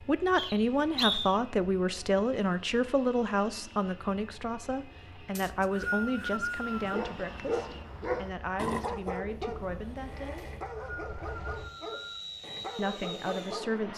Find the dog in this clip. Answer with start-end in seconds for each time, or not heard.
6.7-13.7.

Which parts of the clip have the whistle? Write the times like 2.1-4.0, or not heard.
0.3-1.4, 5.3-7.0, 10.3-12.2.